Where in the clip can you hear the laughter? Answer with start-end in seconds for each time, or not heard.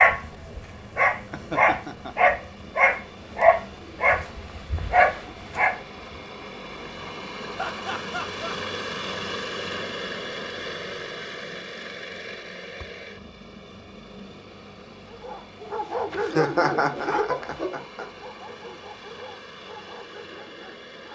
1.3-2.3, 7.5-8.6, 16.1-18.1.